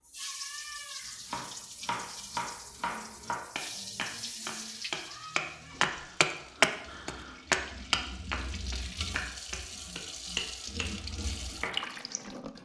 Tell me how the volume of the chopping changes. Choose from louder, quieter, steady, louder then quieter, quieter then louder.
louder then quieter.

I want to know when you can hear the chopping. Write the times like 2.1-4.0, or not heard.
1.2-11.8.